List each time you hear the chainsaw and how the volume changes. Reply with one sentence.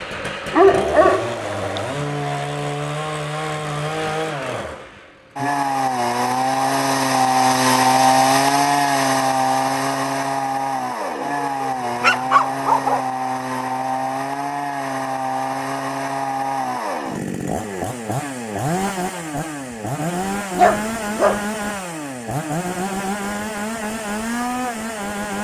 You can hear the chainsaw from 0.0 to 25.3 s, getting louder then quieter.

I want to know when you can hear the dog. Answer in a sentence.
You can hear the dog from 0.5 to 1.8 s, from 11.0 to 13.0 s and from 20.6 to 21.4 s.